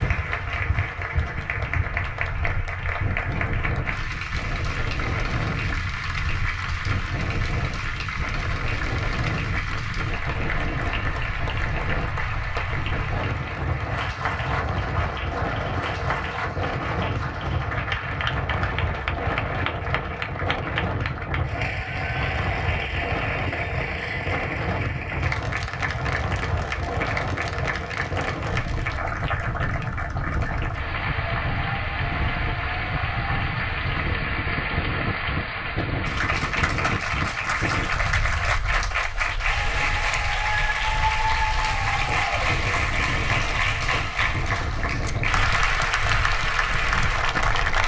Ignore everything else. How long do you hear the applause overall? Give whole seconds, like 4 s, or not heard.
48 s.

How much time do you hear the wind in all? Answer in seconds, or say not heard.
48 s.